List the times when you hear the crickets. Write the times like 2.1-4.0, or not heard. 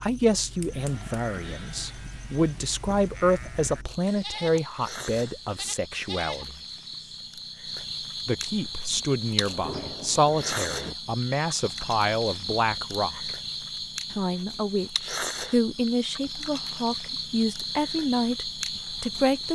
0.0-19.5.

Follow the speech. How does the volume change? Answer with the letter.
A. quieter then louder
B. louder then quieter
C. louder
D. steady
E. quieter
D.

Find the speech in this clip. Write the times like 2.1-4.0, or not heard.
0.0-6.5, 8.2-13.3, 14.1-19.5.